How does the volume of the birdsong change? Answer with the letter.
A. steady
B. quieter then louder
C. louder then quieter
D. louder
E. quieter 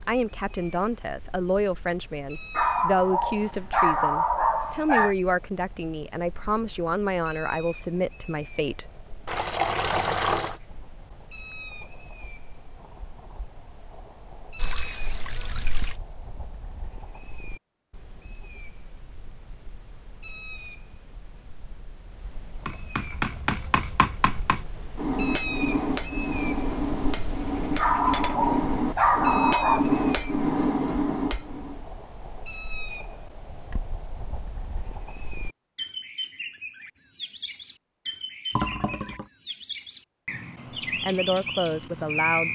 D.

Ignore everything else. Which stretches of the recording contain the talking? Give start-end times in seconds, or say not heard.
0.1-8.8, 41.0-42.5.